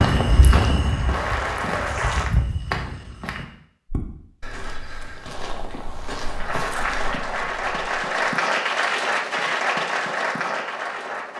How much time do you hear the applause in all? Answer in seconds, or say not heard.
7 s.